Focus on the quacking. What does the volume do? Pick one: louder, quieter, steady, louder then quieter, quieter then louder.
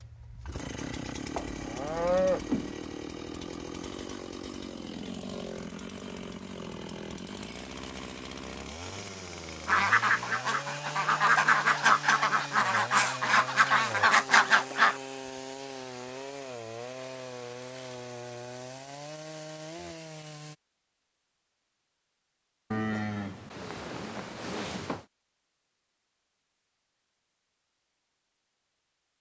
louder.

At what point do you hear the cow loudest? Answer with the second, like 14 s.
2 s.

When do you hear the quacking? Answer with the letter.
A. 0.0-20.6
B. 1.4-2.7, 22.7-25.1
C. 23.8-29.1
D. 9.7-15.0
D.